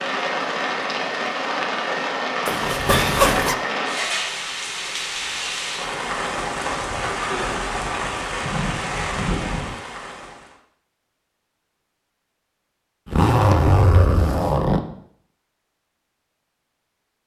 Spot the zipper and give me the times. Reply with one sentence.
You can hear the zipper from 2.5 to 3.5 s and from 13.1 to 14.8 s.